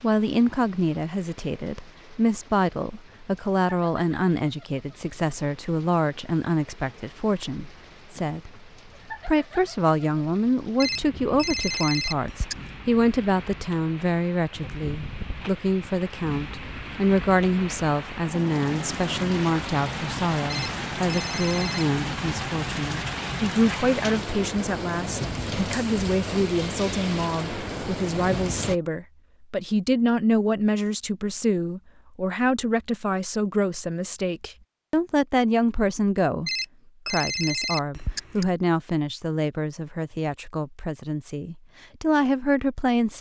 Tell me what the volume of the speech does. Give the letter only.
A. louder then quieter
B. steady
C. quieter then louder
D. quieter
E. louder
B.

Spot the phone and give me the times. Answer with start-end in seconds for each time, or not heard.
10.8-12.7, 20.5-22.0, 36.5-38.5.